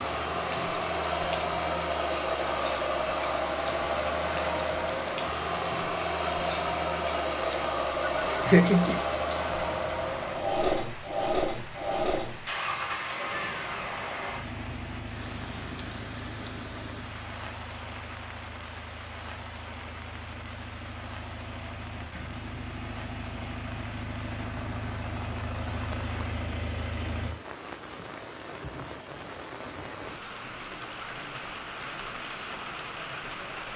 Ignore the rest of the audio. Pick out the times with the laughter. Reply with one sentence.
You can hear the laughter from 8.0 to 9.0 s.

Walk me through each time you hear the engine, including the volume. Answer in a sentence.
You can hear the engine from 0.0 to 27.3 s, getting quieter then louder.